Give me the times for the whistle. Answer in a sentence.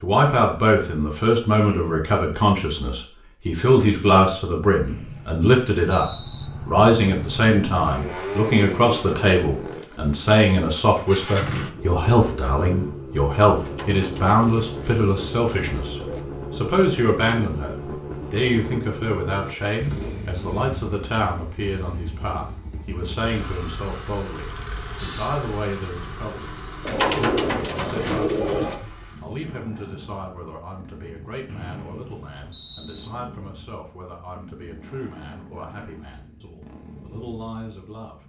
The whistle can be heard from 4.8 to 6.5 s and from 31.4 to 33.1 s.